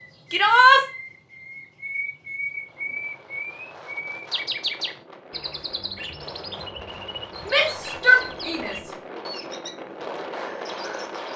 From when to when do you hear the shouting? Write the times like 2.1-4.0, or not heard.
0.3-0.8, 7.5-8.9.